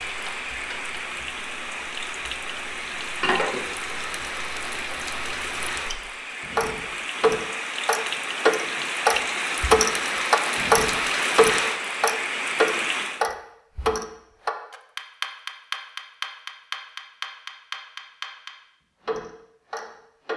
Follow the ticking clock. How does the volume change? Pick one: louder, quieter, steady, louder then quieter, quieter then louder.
louder then quieter.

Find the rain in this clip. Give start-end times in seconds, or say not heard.
0.0-13.2.